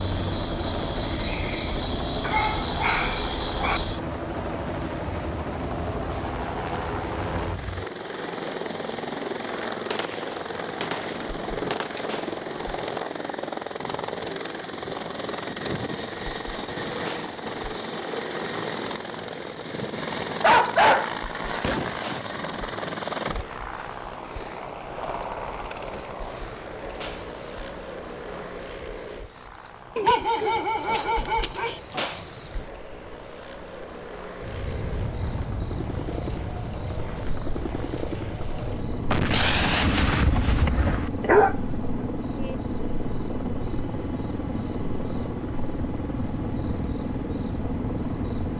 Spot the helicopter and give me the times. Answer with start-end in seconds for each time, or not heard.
0.0-48.5.